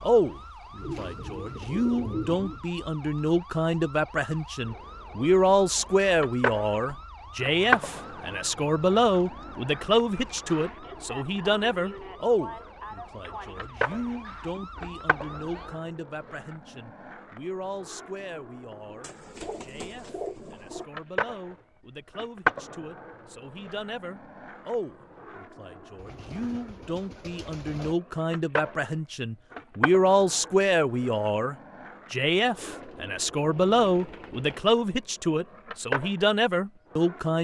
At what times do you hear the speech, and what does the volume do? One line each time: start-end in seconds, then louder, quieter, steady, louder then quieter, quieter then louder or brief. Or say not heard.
0.0-37.3 quieter then louder.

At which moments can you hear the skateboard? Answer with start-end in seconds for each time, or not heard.
4.6-37.3.